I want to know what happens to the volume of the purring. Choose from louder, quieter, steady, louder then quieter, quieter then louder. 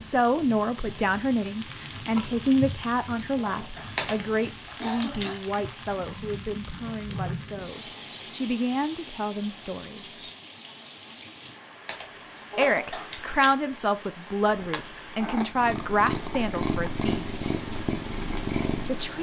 louder.